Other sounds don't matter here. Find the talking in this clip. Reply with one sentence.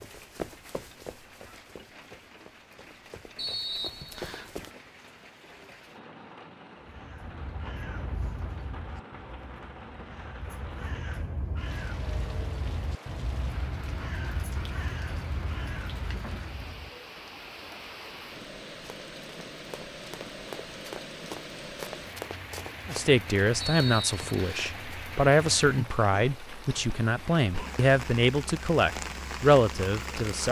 You can hear the talking from 22.9 to 30.4 s.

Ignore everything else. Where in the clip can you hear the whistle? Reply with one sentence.
You can hear the whistle from 3.4 to 4.5 s and from 23.6 to 24.7 s.